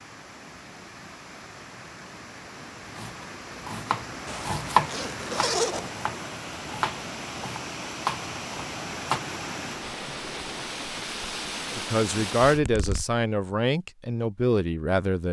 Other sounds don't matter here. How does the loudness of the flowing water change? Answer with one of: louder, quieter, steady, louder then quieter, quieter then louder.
louder.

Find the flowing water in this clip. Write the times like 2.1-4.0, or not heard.
0.0-12.6.